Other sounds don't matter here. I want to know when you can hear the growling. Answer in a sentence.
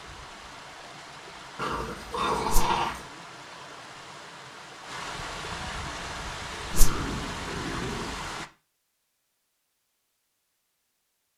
The growling can be heard from 1.6 to 3.1 s and from 6.7 to 8.3 s.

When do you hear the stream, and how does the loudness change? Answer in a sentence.
You can hear the stream from 0.0 to 8.5 s, getting louder.